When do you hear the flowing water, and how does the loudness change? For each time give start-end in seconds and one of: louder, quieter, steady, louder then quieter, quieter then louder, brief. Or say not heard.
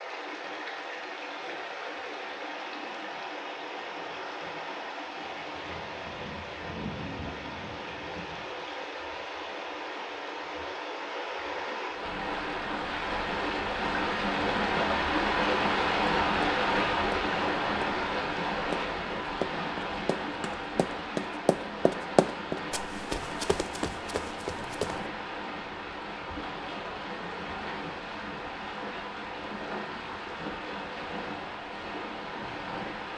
0.0-33.1 louder then quieter.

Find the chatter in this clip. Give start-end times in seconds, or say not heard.
not heard.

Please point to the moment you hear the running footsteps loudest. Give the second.
22 s.